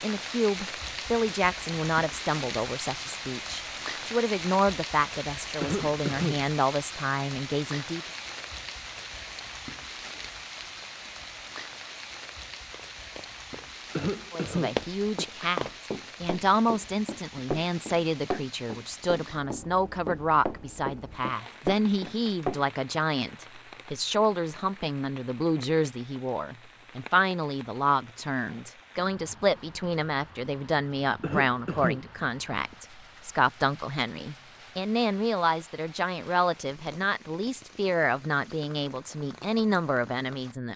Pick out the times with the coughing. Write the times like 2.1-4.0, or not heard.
5.6-6.5, 13.9-15.2, 31.2-32.0.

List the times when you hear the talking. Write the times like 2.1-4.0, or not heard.
0.0-8.0, 14.3-40.7.